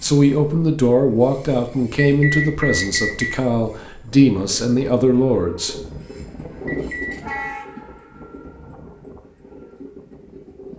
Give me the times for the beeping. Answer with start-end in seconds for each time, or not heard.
1.9-3.4, 6.7-7.3.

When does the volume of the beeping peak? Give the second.
2 s.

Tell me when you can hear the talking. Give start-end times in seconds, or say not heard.
0.0-5.8.